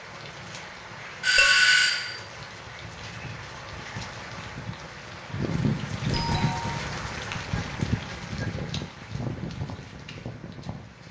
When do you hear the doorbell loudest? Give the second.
2 s.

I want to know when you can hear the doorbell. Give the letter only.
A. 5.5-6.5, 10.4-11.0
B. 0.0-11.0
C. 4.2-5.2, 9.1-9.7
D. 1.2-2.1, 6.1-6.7
D.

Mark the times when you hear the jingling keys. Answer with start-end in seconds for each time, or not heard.
not heard.